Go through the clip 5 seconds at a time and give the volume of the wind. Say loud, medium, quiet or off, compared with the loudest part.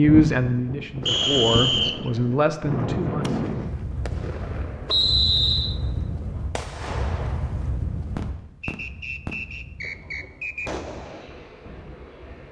loud, medium, quiet.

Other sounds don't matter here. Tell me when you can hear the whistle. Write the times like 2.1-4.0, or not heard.
1.1-2.1, 4.8-5.8, 8.6-10.7.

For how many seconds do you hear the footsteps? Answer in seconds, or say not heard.
not heard.